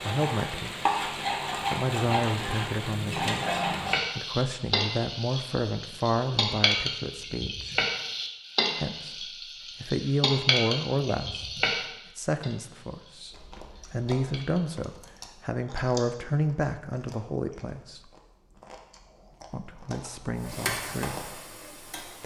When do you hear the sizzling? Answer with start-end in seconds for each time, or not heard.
0.0-14.8, 20.4-22.2.